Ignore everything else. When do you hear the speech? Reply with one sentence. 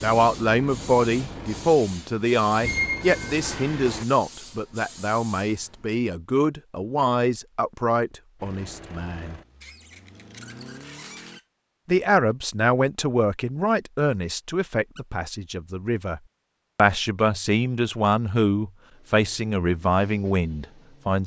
The speech can be heard from 0.0 to 9.4 s and from 11.8 to 21.2 s.